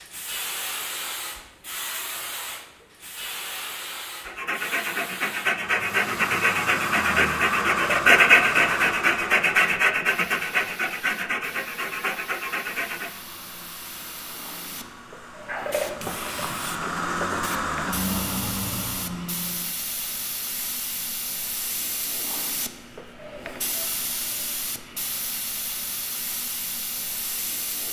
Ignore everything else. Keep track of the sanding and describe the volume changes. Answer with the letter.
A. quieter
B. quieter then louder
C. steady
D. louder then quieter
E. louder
D.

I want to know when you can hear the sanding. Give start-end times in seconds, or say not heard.
4.2-13.2.